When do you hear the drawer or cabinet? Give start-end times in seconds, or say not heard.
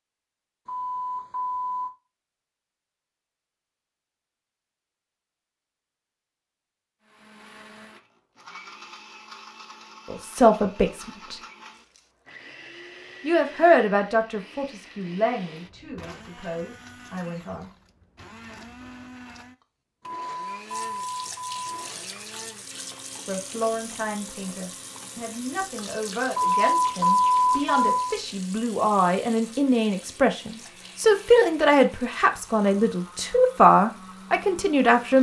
not heard.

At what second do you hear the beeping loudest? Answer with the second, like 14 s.
27 s.